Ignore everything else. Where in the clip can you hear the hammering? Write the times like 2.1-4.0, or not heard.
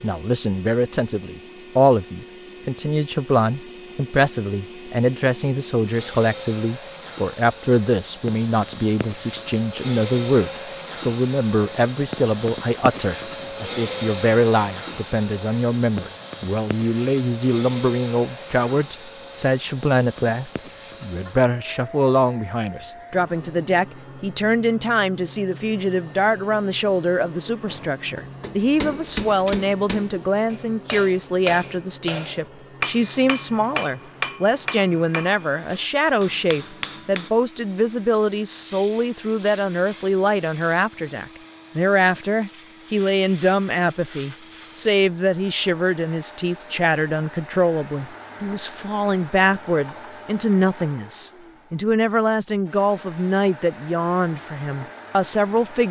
27.6-37.3.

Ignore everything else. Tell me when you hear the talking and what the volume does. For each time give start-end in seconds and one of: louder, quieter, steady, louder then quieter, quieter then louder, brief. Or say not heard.
0.0-55.8 steady.